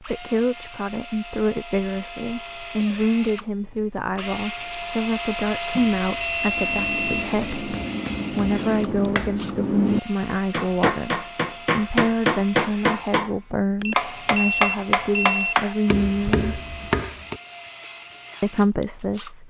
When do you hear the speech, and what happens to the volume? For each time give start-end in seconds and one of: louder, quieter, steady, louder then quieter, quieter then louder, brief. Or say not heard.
0.0-16.6 steady
18.4-19.4 brief.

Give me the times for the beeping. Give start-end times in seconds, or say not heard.
5.7-7.2, 13.8-15.6.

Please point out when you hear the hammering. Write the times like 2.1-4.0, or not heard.
6.4-13.3, 13.9-17.4.